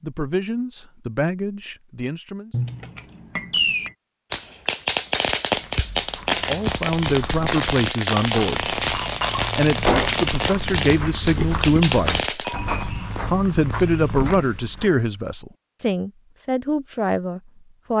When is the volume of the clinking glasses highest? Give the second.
10 s.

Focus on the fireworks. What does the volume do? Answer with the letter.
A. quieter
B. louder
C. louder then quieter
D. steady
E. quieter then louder
D.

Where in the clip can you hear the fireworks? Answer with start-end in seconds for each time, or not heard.
3.5-12.6.